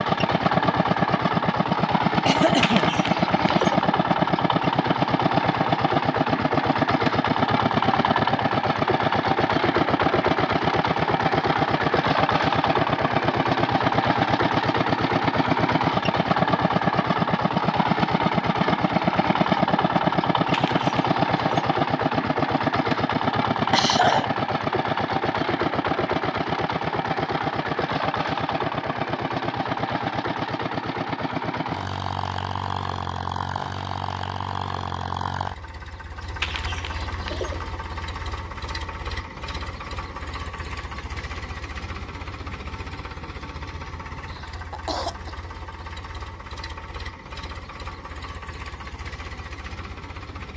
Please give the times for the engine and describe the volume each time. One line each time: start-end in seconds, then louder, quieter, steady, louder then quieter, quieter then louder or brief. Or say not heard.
0.0-50.5 quieter.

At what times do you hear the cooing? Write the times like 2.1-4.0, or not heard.
2.6-3.9, 20.5-21.8, 36.4-37.6.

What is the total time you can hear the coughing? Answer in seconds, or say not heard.
2 s.